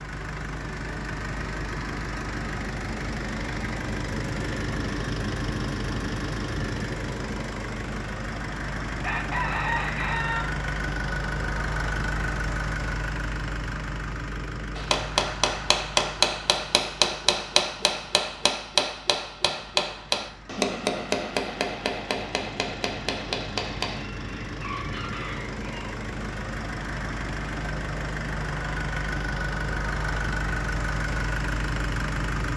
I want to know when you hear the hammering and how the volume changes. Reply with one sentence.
The hammering can be heard from 14.8 to 24.1 s, getting quieter.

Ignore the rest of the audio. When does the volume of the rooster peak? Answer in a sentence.
The loudest moment of the rooster is at 10 seconds.